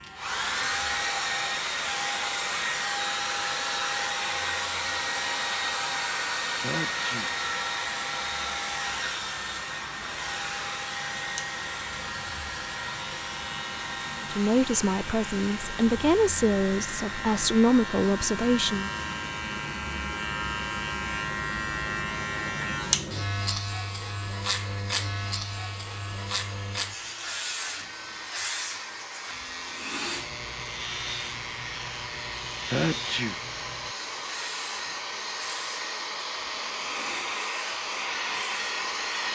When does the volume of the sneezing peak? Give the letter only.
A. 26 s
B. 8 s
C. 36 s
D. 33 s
D.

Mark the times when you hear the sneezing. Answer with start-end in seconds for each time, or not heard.
6.6-7.3, 32.6-33.4.